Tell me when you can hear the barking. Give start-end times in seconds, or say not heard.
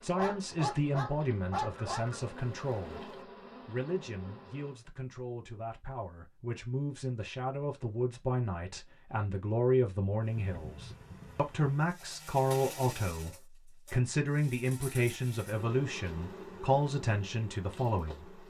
0.1-2.0.